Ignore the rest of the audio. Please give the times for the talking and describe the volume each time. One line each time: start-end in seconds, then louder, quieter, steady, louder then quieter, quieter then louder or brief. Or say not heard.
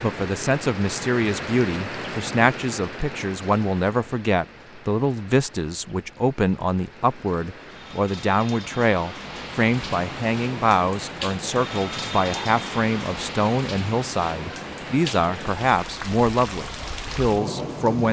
0.0-18.0 steady.